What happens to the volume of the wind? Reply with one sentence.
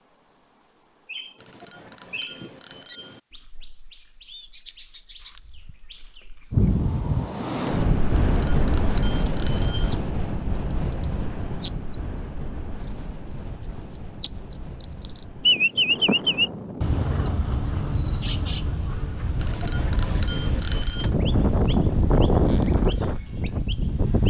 The loudness of the wind goes down, then up.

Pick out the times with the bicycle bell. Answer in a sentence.
The bicycle bell can be heard from 1.4 to 3.2 s, from 8.2 to 9.9 s and from 19.4 to 21.1 s.